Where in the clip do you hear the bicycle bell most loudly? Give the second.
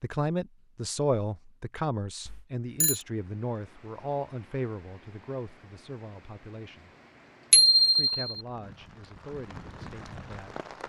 8 s.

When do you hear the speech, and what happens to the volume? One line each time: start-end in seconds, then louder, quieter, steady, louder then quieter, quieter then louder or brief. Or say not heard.
0.0-6.9 quieter
8.0-10.6 brief.